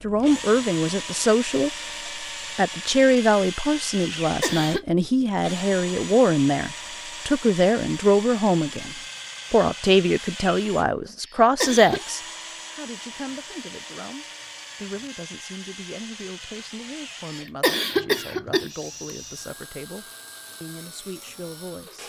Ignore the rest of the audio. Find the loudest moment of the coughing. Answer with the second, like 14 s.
18 s.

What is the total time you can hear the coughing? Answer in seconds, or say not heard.
3 s.